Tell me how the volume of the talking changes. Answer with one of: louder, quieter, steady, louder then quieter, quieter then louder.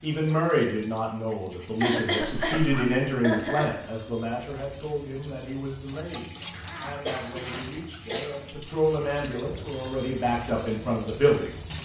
quieter then louder.